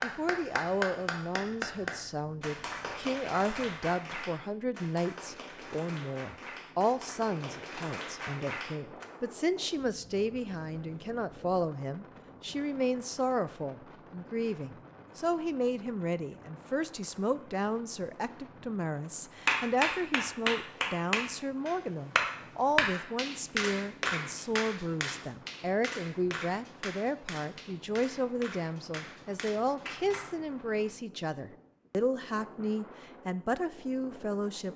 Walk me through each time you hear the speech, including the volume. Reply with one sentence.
You can hear the speech from 0.0 to 34.7 s, at a steady volume.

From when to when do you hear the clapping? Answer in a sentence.
The clapping can be heard from 0.0 to 9.1 s and from 19.4 to 30.3 s.